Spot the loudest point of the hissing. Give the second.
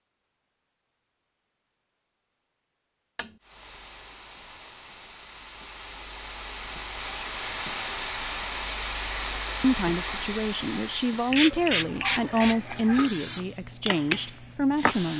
12 s.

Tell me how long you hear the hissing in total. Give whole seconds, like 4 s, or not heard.
12 s.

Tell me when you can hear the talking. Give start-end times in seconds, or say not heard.
9.6-15.1.